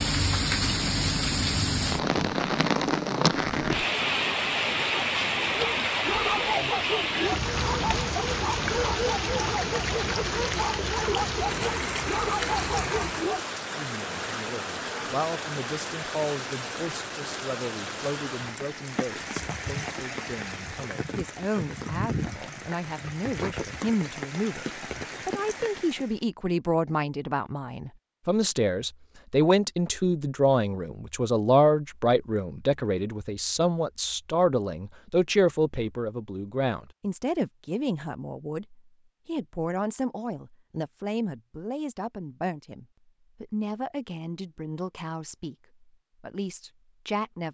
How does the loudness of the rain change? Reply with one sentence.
The loudness of the rain goes down.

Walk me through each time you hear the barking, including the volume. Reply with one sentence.
The barking can be heard from 5.5 to 13.4 s, at a steady volume.